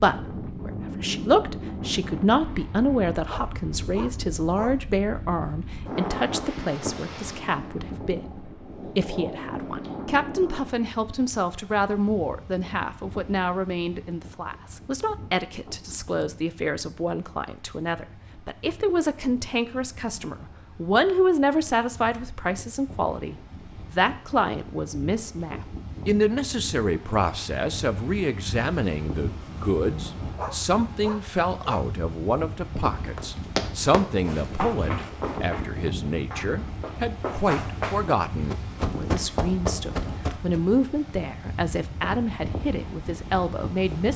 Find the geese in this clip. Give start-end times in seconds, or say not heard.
not heard.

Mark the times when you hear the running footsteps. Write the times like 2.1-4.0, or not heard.
33.1-40.6.